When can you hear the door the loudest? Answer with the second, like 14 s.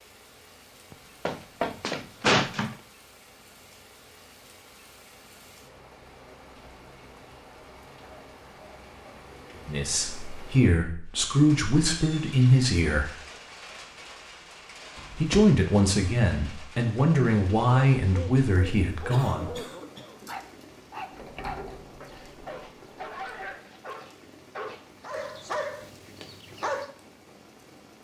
2 s.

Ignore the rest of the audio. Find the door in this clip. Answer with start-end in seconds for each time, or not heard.
0.9-2.8, 14.9-15.6, 21.1-23.6.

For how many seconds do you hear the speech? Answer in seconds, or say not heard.
8 s.